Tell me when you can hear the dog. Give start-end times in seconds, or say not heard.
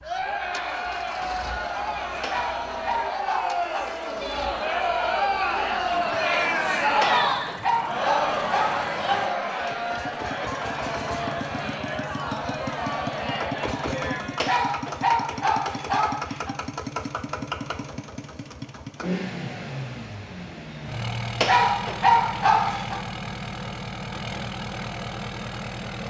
2.2-3.9, 7.0-9.3, 14.4-16.6, 21.4-23.0.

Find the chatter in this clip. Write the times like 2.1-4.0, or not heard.
0.0-14.6.